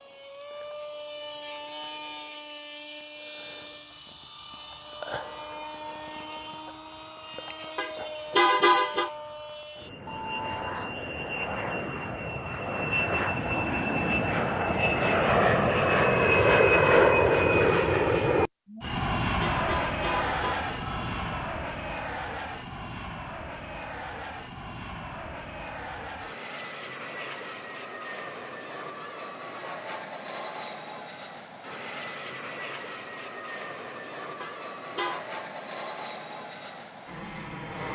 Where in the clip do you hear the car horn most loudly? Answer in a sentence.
The volume of the car horn peaks at 9 seconds.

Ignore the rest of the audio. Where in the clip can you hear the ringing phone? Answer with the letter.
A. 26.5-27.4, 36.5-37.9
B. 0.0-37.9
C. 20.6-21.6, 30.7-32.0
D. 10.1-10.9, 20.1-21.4
D.